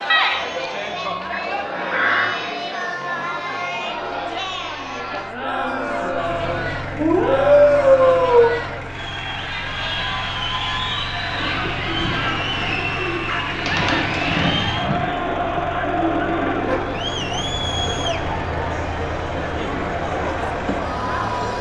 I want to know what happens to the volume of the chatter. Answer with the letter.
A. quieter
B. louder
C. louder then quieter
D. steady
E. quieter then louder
D.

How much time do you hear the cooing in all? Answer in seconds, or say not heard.
6 s.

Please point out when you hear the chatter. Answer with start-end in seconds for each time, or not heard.
0.0-21.5.